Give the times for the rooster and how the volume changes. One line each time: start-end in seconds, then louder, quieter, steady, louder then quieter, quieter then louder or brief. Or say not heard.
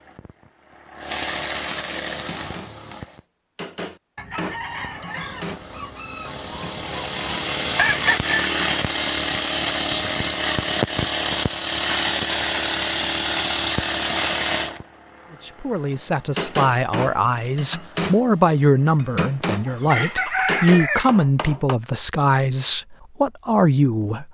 4.2-8.5 quieter then louder
19.6-21.1 brief.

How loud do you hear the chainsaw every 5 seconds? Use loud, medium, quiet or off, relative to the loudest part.
medium, loud, loud, quiet, off.